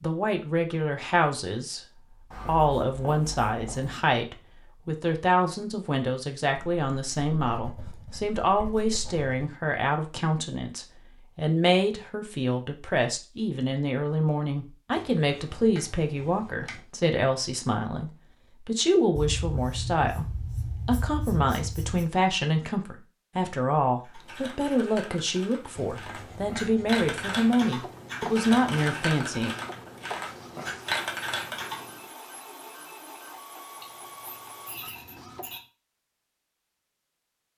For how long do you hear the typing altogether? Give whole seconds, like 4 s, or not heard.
8 s.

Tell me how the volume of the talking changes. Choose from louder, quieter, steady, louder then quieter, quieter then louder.
steady.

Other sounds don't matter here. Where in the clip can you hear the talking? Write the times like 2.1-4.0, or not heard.
0.0-29.6.